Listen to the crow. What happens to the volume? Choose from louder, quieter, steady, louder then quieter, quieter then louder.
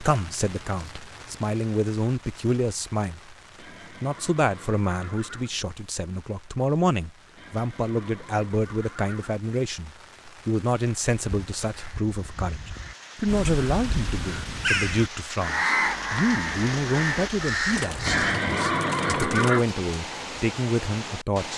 louder.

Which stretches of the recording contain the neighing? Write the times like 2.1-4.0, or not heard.
3.5-5.5, 7.3-9.4, 18.1-19.6.